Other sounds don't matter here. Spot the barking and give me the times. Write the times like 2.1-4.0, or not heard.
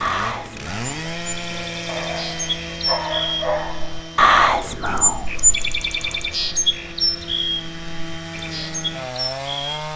1.9-4.2.